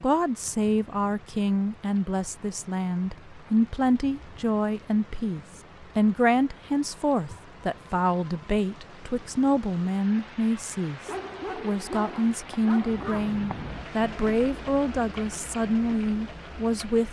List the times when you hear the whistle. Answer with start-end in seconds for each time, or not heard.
not heard.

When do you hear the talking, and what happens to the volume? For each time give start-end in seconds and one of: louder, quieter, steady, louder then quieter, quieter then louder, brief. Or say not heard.
0.0-17.0 steady.